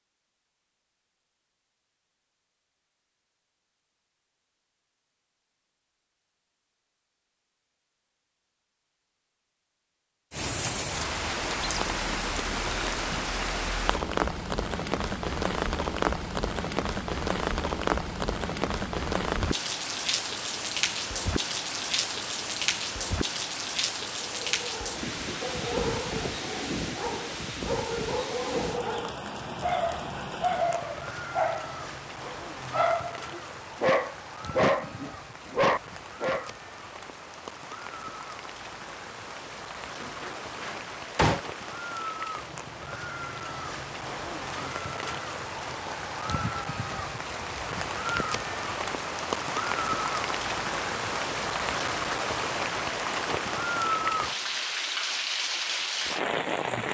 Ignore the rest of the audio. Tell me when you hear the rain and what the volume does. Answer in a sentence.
The rain can be heard from 10.3 to 56.8 s, getting quieter then louder.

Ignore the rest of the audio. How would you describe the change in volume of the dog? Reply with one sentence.
The volume of the dog goes up.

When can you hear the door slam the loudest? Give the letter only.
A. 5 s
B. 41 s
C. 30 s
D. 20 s
B.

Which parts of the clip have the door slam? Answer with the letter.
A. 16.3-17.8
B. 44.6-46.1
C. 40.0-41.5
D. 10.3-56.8
C.